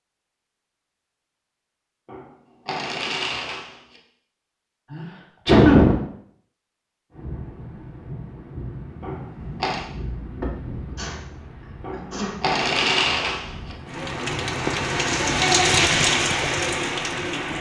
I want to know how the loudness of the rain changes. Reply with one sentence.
The volume of the rain goes down, then up.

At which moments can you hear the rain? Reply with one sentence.
You can hear the rain from 7.1 to 17.5 s.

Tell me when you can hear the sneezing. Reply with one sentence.
You can hear the sneezing from 4.9 to 6.0 s, from 10.4 to 11.2 s and from 11.9 to 12.4 s.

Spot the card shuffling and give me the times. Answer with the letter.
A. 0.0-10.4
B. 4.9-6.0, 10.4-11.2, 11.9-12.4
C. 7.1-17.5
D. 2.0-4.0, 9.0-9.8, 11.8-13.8
D.